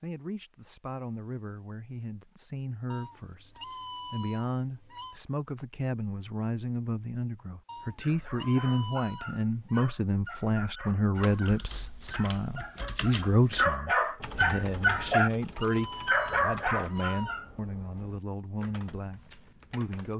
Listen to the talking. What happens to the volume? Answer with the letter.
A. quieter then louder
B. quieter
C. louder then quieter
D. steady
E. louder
C.